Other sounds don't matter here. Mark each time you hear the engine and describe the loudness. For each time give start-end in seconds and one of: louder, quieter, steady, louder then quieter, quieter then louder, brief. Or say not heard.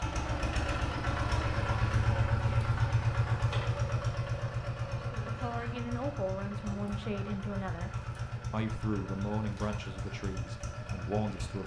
0.0-11.6 quieter.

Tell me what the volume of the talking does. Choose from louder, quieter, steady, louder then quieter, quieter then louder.
steady.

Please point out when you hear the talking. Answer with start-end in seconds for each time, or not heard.
5.2-11.6.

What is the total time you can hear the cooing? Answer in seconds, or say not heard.
not heard.